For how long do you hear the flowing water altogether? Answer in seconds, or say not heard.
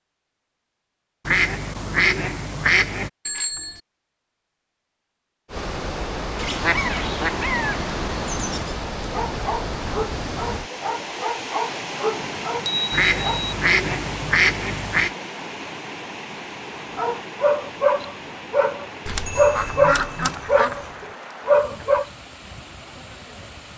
18 s.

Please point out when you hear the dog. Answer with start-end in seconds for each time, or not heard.
8.9-13.4, 16.9-22.1.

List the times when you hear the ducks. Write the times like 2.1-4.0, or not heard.
1.2-3.1, 6.3-8.8, 12.9-15.1, 19.1-20.9.